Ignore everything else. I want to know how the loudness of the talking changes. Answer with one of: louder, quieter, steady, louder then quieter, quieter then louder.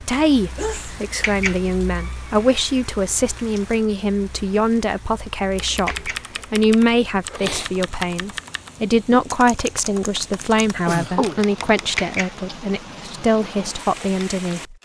steady.